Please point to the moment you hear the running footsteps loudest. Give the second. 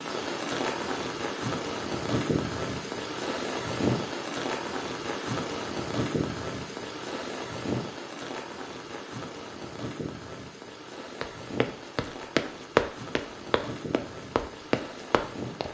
13 s.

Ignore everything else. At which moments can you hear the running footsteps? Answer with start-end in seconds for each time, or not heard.
11.2-15.6.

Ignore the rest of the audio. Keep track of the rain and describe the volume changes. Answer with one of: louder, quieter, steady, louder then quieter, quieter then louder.
quieter.